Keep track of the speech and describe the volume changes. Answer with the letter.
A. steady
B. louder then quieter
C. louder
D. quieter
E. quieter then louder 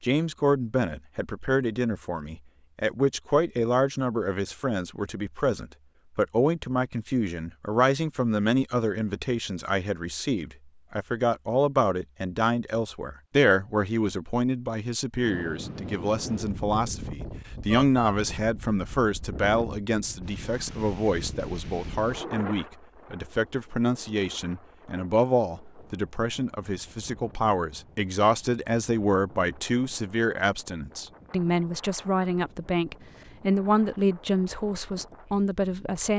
A.